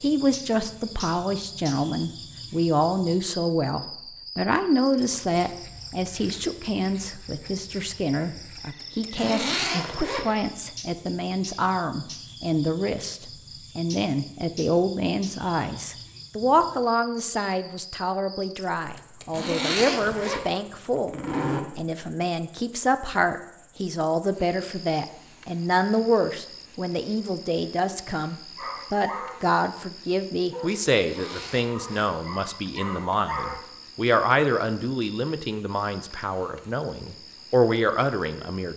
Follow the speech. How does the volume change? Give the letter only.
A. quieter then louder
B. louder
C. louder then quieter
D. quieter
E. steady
E.